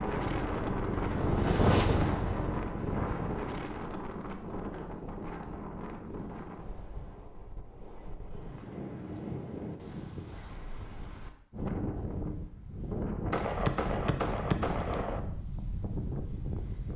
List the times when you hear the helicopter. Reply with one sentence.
You can hear the helicopter from 0.0 to 3.6 s.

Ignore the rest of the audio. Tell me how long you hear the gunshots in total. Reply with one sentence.
You can hear the gunshots for 2 seconds altogether.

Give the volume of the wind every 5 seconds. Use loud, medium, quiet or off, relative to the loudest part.
loud, medium, loud, loud.